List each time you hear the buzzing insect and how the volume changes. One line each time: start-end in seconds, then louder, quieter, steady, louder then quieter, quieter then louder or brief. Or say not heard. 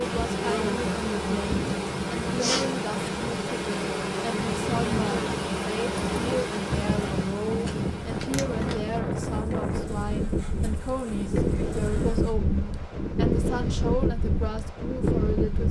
0.0-12.3 quieter.